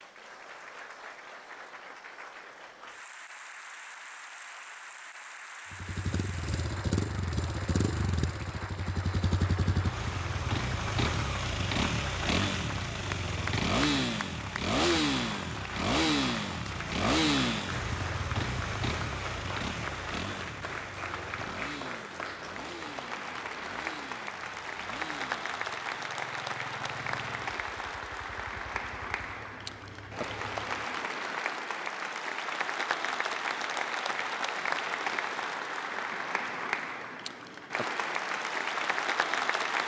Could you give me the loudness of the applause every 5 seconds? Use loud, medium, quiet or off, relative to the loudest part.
quiet, medium, medium, medium, medium, loud, loud, loud.